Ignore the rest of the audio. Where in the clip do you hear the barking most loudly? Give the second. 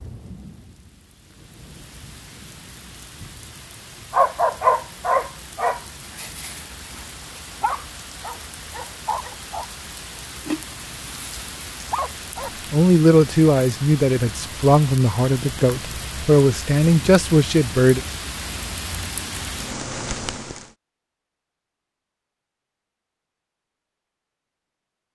5 s.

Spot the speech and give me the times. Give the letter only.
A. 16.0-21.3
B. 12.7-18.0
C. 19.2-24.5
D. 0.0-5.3
B.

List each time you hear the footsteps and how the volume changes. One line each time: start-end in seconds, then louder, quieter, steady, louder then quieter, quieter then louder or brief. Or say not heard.
not heard.